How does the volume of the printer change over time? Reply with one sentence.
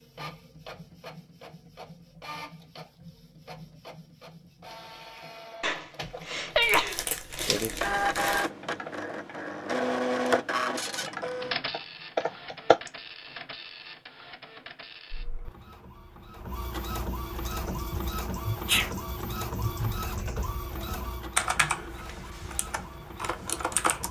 The loudness of the printer goes up, then down.